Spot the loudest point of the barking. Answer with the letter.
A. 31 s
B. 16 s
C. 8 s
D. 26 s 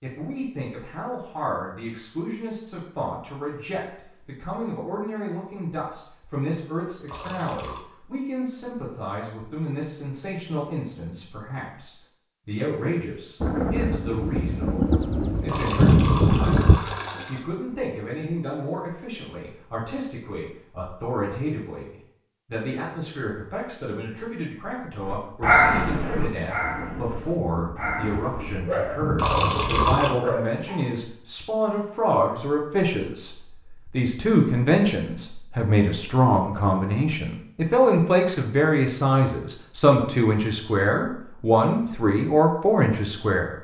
D.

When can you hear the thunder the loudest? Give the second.
16 s.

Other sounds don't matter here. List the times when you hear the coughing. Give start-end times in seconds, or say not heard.
not heard.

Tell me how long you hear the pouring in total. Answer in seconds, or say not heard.
4 s.